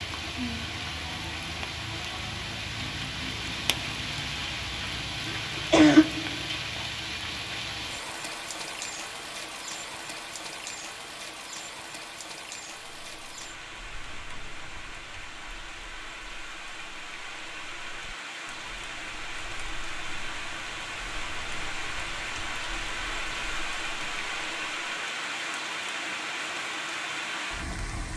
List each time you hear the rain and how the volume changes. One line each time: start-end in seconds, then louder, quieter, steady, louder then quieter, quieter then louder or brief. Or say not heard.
0.0-28.1 quieter then louder.